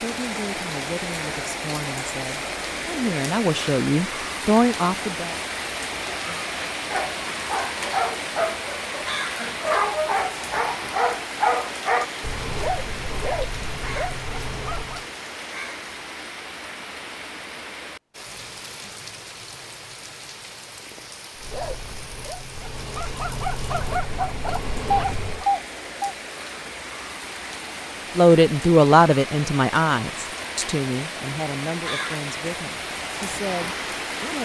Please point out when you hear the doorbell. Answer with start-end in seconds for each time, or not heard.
24.9-26.1.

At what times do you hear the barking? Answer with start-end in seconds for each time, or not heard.
6.0-15.1, 21.4-25.4.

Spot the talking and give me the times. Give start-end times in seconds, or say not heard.
0.0-5.4, 28.1-34.4.